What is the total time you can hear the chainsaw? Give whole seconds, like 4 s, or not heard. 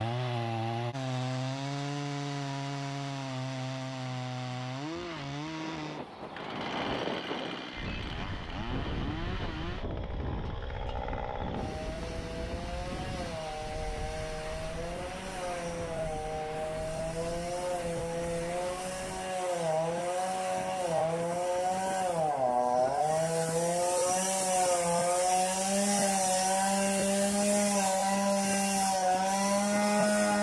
30 s.